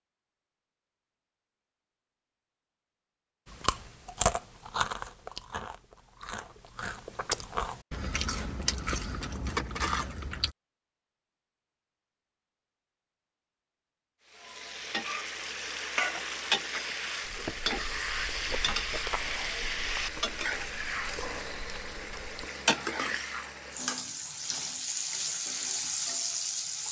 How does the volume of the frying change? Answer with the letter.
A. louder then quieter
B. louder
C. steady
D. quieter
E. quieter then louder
C.